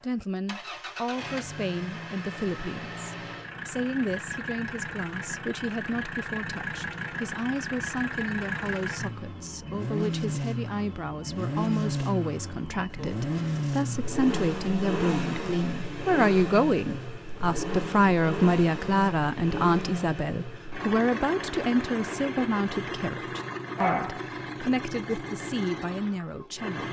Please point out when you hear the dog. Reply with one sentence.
You can hear the dog from 23.8 to 24.3 s.